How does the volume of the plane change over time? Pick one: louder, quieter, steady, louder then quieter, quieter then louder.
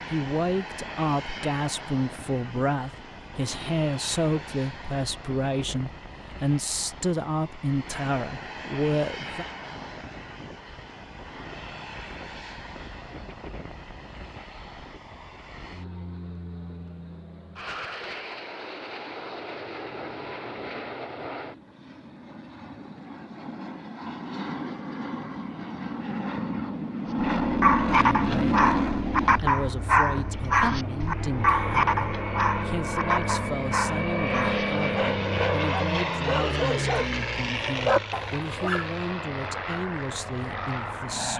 louder.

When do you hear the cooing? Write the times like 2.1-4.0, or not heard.
not heard.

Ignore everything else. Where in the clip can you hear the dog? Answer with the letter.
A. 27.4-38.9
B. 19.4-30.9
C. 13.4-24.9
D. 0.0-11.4
A.